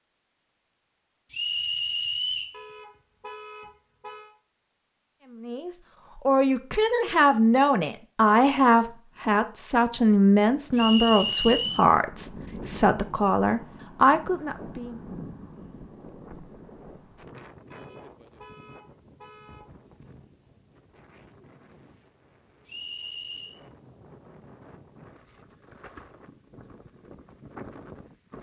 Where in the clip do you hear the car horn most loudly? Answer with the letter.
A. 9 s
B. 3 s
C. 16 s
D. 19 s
B.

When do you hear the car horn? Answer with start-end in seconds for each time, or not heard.
2.5-4.3, 17.7-19.6.